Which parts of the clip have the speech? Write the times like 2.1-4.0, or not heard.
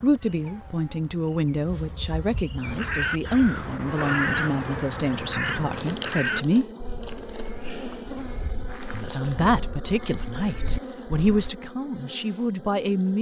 0.0-6.7, 8.9-13.1.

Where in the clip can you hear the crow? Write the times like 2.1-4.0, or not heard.
2.6-11.5.